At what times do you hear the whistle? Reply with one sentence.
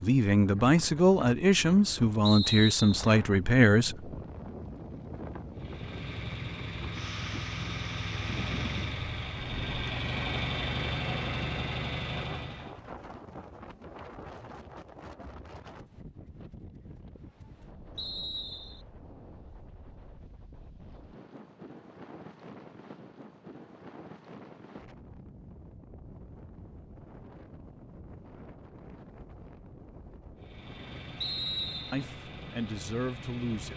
The whistle can be heard from 2.2 to 3.0 s, from 17.9 to 18.9 s and from 31.2 to 32.0 s.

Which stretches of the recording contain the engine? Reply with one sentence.
You can hear the engine from 5.5 to 12.8 s and from 30.4 to 33.7 s.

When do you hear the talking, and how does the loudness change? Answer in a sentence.
The talking can be heard from 0.0 to 4.1 s, at a steady volume; and briefly from 31.9 to 33.7 s.